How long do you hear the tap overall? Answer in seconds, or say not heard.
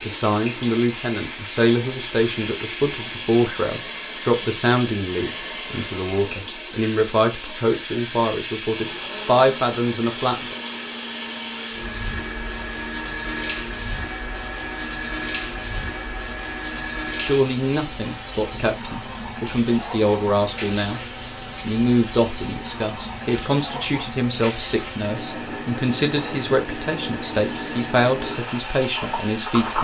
30 s.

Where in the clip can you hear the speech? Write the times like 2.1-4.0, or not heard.
0.0-10.6, 17.2-21.0, 21.6-29.8.